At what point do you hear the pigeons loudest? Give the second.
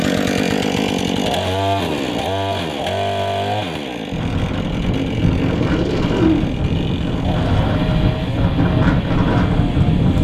6 s.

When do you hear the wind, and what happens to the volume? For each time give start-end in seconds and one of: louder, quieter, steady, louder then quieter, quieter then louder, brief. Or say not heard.
4.1-10.1 louder.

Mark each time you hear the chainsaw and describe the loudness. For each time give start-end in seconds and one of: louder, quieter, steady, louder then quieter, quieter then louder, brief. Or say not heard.
0.0-10.1 quieter.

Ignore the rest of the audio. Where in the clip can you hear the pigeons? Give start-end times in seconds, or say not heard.
5.0-6.8.